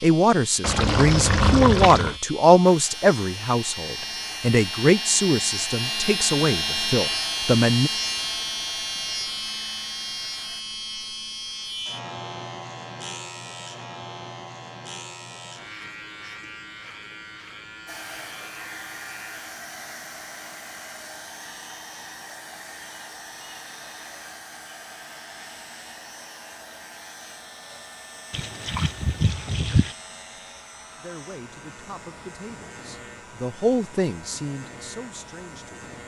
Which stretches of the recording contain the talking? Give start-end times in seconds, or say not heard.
0.0-7.9, 31.0-36.0.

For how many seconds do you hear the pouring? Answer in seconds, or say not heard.
3 s.